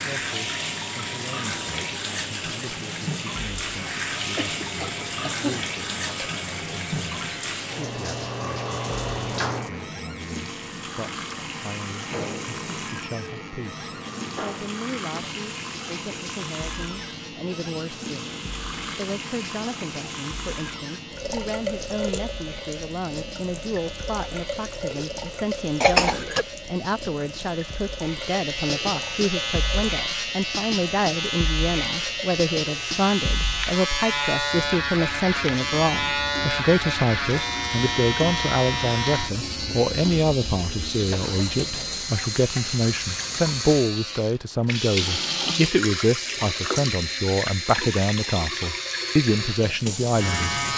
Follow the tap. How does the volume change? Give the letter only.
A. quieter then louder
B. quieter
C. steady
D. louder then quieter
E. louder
A.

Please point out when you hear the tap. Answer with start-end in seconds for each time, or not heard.
0.0-50.7.